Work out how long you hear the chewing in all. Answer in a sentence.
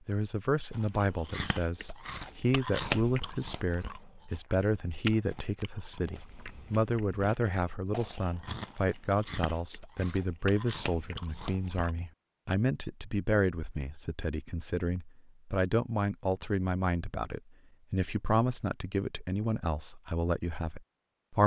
You can hear the chewing for 11 seconds altogether.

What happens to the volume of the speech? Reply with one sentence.
The volume of the speech stays about the same.